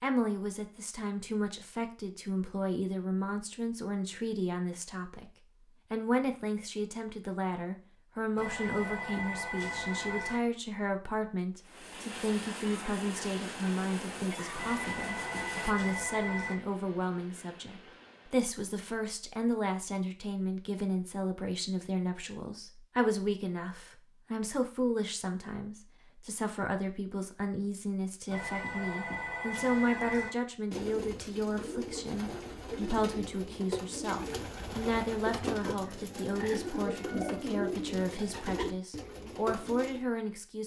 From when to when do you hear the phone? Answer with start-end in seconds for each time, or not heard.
8.3-10.4, 14.6-16.6, 28.3-30.3.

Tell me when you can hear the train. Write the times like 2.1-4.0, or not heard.
11.6-18.5.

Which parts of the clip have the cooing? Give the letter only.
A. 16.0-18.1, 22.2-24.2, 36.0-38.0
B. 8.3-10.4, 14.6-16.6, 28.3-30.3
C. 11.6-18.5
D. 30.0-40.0
D.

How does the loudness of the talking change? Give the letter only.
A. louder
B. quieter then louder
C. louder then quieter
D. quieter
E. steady
E.